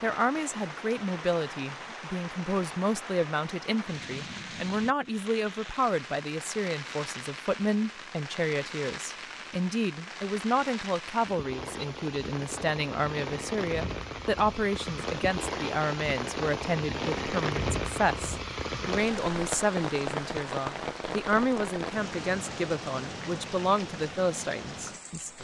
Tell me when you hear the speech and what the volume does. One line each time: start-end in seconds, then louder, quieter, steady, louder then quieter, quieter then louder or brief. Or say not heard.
0.0-25.3 steady.